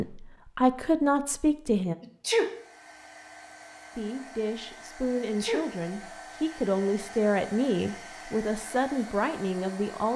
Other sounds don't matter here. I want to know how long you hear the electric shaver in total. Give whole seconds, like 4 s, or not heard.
not heard.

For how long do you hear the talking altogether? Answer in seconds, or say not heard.
8 s.